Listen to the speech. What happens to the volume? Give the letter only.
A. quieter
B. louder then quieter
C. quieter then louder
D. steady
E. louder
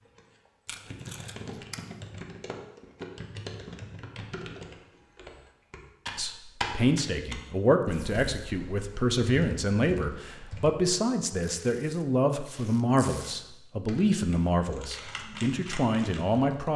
D.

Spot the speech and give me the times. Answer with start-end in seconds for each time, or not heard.
6.2-16.7.